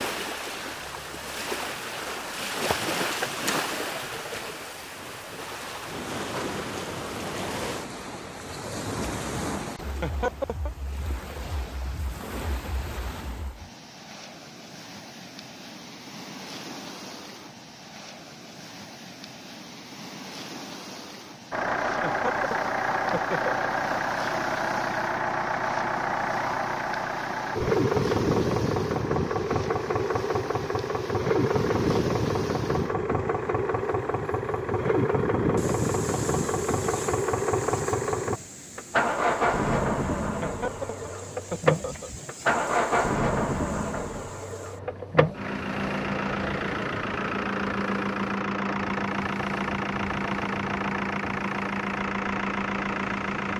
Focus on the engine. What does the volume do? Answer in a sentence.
The volume of the engine stays about the same.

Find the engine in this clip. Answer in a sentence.
The engine can be heard from 21.5 to 53.5 s.